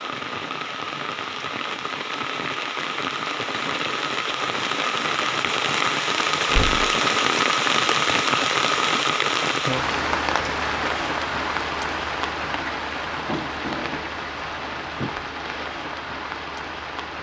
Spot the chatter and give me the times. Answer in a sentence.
The chatter can't be heard in this clip.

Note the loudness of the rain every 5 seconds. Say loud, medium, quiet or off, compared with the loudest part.
medium, loud, medium, medium.